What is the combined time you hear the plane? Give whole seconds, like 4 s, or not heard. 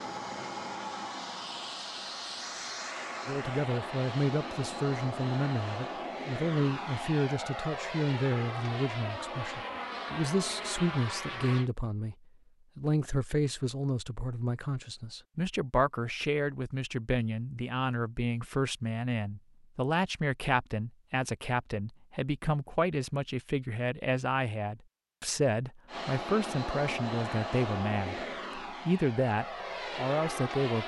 17 s.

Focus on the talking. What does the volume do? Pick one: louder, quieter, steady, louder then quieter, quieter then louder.
steady.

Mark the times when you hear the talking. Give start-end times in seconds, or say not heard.
3.2-12.2, 12.8-30.8.